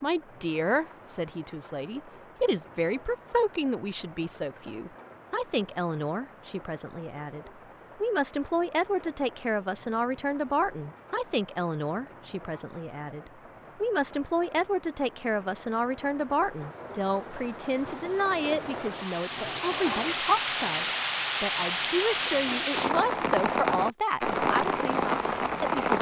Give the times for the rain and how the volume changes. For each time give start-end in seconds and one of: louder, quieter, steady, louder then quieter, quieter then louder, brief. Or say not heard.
0.0-25.9 louder.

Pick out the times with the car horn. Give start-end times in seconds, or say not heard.
not heard.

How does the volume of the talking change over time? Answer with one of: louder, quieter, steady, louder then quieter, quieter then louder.
steady.